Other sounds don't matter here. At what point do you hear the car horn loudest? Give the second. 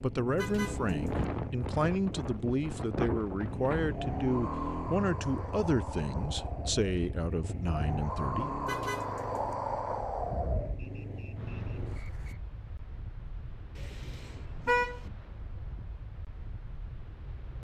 15 s.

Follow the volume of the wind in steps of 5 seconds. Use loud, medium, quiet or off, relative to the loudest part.
loud, loud, medium, quiet.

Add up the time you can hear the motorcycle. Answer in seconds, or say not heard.
12 s.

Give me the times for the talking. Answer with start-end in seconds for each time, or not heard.
0.0-8.5.